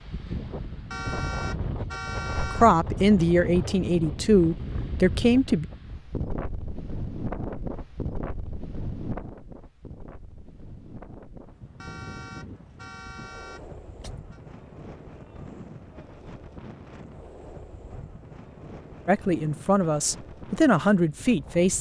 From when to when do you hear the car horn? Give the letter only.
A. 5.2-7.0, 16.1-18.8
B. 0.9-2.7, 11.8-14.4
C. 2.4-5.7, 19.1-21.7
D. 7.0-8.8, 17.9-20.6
B.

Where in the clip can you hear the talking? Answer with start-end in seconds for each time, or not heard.
2.4-5.7, 19.1-21.7.